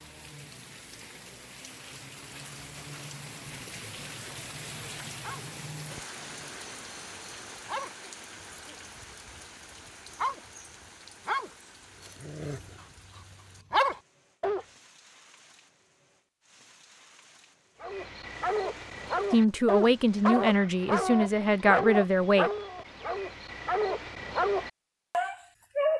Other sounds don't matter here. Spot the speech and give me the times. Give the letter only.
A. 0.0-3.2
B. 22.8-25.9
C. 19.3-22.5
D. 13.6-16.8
C.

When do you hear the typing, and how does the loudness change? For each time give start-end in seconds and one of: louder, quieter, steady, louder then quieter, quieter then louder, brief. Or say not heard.
not heard.